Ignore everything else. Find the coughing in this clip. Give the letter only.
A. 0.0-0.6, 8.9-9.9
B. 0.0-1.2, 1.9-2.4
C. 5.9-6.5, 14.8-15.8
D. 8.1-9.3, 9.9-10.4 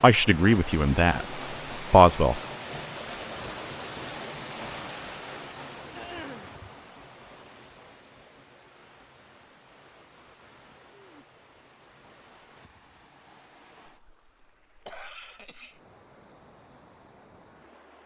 C.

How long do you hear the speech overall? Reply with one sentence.
You can hear the speech for 2 seconds altogether.